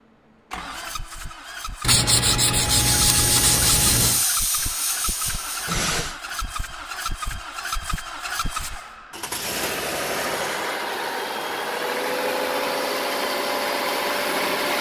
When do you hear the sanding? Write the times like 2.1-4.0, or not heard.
1.8-4.2.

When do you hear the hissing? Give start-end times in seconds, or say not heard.
2.6-6.2.